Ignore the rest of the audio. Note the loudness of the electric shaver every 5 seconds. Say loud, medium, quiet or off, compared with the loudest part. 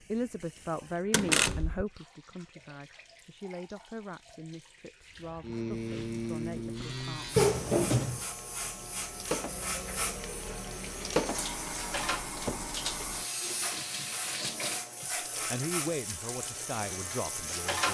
off, loud, loud, loud.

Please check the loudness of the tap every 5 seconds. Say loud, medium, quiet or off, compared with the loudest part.
quiet, medium, loud, medium.